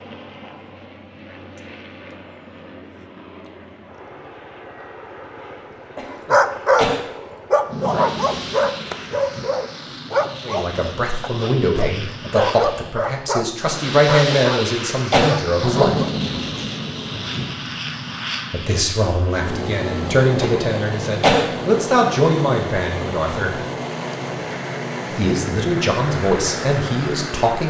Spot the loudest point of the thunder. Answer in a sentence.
The loudest moment of the thunder is at 16 seconds.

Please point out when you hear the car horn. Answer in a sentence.
You can't hear the car horn here.